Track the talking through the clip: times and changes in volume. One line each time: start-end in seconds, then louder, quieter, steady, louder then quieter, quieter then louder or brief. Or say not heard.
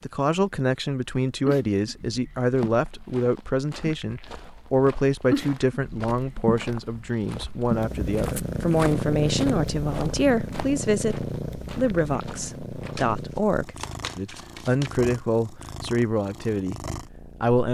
0.0-17.6 steady.